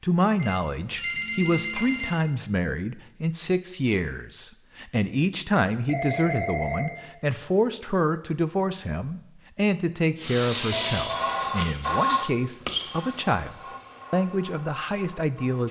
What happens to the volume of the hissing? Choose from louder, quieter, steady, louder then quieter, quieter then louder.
quieter.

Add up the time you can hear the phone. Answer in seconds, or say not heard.
4 s.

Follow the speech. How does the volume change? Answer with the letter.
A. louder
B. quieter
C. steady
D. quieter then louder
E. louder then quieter
C.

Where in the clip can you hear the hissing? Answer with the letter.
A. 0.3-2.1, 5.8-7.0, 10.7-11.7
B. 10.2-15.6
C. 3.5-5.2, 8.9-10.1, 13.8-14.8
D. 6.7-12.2
B.